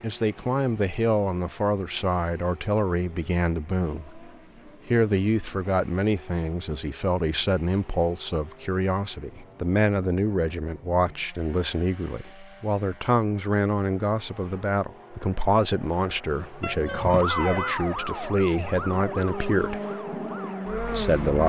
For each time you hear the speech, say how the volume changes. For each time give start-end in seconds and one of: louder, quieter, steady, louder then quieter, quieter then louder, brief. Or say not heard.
0.0-19.8 steady
20.8-21.4 brief.